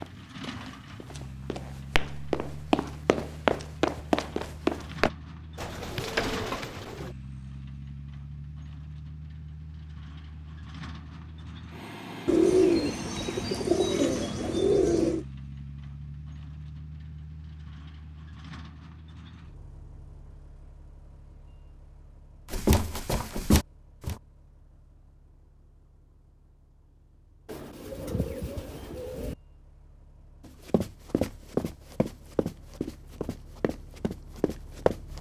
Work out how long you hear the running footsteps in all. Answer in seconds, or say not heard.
11 s.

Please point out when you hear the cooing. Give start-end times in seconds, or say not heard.
5.5-7.1, 12.2-15.2, 27.4-29.4.